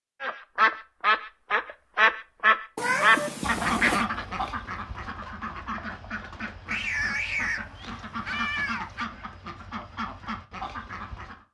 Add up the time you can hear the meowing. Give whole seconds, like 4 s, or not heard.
4 s.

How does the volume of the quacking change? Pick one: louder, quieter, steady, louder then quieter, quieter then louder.
quieter.